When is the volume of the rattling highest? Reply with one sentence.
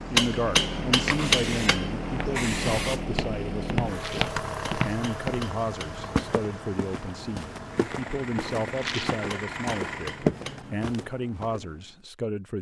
The loudest moment of the rattling is at 9 seconds.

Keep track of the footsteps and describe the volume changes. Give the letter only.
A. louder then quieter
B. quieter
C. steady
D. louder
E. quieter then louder
E.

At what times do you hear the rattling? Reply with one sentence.
You can hear the rattling from 3.9 to 4.3 s and from 8.8 to 9.2 s.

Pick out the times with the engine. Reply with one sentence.
You can hear the engine from 0.0 to 10.3 s.